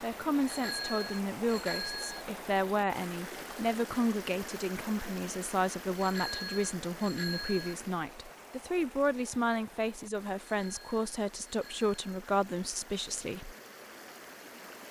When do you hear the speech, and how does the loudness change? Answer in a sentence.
The speech can be heard from 0.0 to 13.6 s, at a steady volume.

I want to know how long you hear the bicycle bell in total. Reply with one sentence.
You can hear the bicycle bell for 5 seconds altogether.